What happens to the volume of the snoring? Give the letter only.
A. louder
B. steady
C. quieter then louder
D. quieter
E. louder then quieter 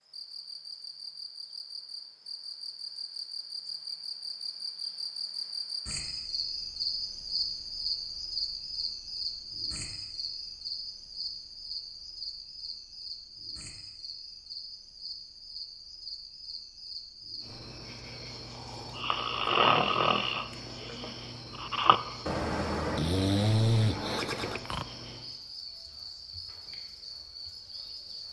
C.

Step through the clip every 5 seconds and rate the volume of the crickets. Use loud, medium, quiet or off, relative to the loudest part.
medium, loud, medium, medium, medium, medium.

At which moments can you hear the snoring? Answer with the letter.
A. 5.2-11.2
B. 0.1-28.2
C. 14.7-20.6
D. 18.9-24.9
D.